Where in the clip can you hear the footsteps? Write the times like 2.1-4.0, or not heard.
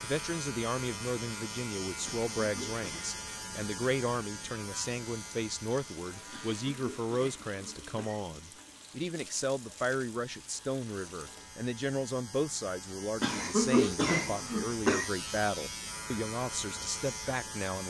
not heard.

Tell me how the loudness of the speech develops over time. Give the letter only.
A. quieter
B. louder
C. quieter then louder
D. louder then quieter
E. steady
E.